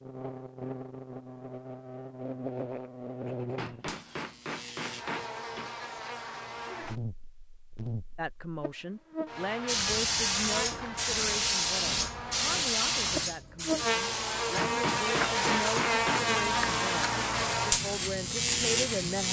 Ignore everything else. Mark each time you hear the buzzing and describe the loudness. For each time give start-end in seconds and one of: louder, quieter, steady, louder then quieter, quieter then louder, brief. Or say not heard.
0.0-19.2 louder.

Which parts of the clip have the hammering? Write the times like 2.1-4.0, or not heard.
3.5-5.7, 14.6-16.4.